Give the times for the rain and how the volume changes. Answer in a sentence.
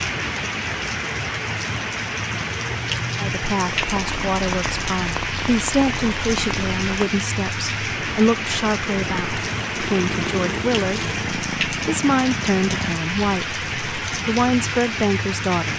The rain can be heard from 0.0 to 15.7 s, at a steady volume.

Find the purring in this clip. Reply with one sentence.
The purring can be heard from 2.6 to 7.0 s and from 8.9 to 13.0 s.